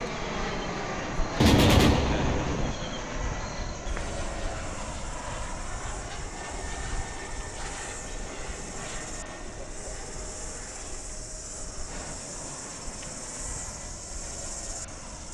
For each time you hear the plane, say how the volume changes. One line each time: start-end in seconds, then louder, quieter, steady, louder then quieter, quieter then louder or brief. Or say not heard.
0.0-15.2 quieter.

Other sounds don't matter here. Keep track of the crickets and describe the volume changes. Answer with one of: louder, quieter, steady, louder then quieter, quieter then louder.
louder.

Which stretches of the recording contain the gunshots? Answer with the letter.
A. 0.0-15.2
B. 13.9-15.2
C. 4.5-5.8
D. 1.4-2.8
D.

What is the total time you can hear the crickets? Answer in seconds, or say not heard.
15 s.